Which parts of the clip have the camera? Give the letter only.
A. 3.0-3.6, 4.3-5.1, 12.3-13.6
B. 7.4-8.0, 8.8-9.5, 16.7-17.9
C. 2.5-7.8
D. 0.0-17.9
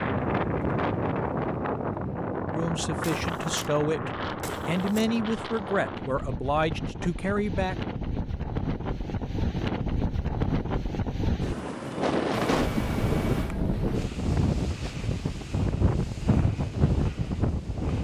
A.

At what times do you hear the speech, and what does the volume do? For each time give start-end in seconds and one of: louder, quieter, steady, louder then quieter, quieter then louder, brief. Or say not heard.
2.5-7.8 steady.